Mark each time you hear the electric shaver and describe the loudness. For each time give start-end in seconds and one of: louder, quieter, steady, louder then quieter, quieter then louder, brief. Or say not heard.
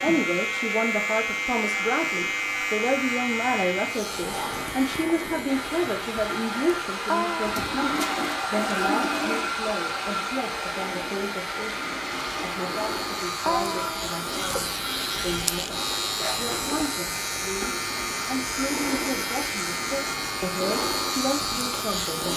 0.0-22.3 quieter then louder.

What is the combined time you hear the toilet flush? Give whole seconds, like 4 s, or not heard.
3 s.